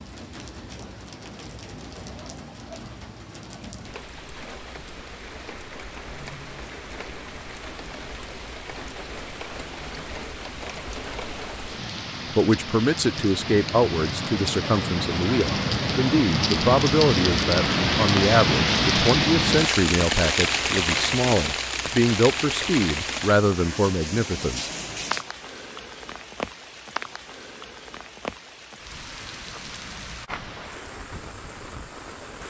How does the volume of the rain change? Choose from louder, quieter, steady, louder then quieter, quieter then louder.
louder then quieter.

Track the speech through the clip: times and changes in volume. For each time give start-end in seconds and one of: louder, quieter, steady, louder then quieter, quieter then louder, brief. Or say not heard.
12.3-24.7 steady.